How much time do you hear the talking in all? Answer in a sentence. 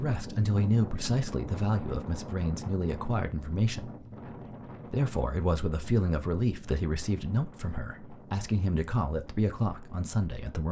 You can hear the talking for 10 seconds altogether.